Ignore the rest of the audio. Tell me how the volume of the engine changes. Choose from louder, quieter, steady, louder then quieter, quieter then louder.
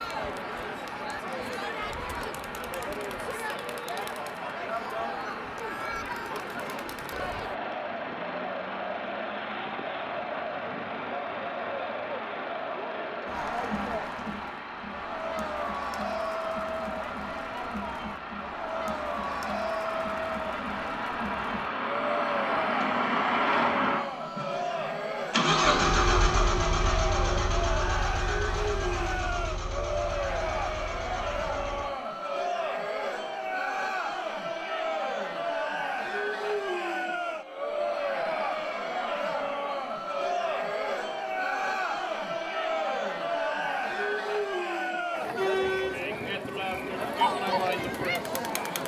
louder.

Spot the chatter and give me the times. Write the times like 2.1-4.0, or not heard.
0.0-48.8.